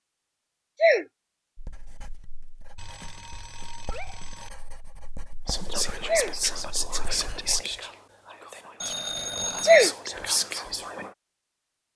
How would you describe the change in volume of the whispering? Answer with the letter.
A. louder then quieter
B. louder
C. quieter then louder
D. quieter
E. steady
C.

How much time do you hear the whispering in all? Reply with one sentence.
You can hear the whispering for 6 seconds altogether.